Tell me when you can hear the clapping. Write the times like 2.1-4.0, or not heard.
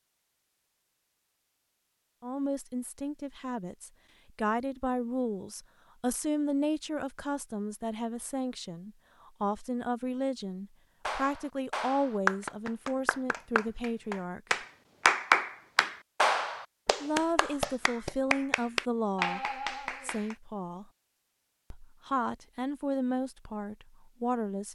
11.1-20.4.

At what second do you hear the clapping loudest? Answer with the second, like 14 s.
15 s.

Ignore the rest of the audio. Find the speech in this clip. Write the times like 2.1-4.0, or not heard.
2.2-14.4, 17.0-20.9, 21.7-24.7.